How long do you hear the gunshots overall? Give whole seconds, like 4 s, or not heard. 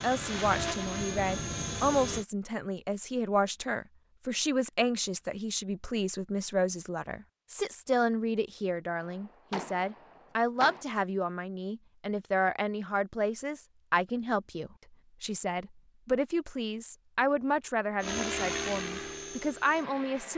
2 s.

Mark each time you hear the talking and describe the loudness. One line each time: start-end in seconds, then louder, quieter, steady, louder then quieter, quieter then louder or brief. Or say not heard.
0.0-20.3 steady.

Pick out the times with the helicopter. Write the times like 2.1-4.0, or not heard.
0.0-2.2, 18.0-20.3.